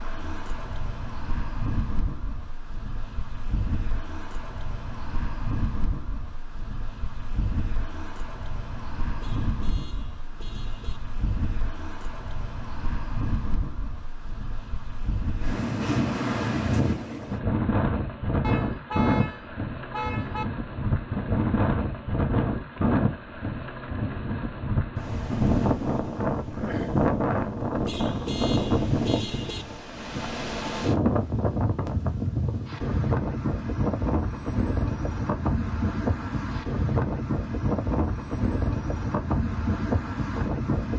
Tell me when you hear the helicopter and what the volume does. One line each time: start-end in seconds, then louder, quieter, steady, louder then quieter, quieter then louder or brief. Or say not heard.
not heard.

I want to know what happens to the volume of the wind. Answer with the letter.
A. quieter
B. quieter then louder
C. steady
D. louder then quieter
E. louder
E.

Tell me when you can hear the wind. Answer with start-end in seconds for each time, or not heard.
0.0-40.9.